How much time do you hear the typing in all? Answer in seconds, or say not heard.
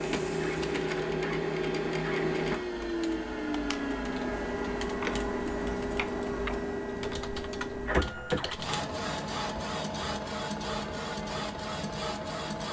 6 s.